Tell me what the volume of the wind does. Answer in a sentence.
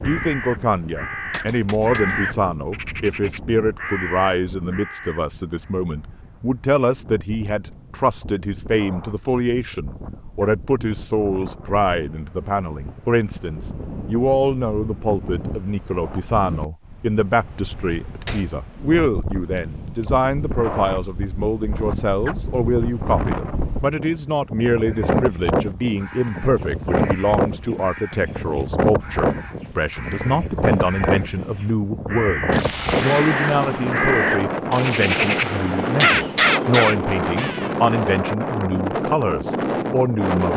The loudness of the wind goes up.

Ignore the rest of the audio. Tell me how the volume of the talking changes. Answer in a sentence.
The loudness of the talking stays about the same.